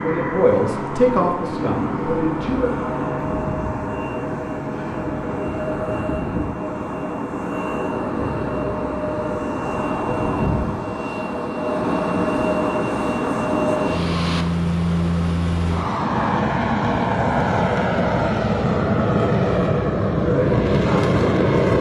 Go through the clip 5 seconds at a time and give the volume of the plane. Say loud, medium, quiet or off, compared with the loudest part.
medium, medium, loud, loud, loud.